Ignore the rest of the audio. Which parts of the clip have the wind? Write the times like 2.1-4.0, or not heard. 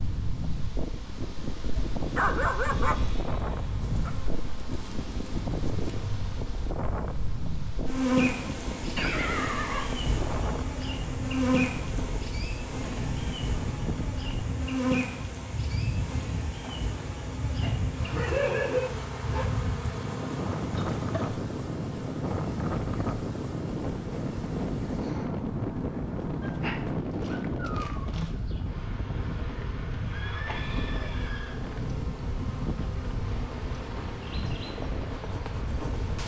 0.0-36.2.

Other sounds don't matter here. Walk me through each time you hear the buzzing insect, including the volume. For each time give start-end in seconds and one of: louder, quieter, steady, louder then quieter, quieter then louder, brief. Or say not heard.
0.0-36.2 louder then quieter.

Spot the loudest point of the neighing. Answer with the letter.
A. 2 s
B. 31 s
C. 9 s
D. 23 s
C.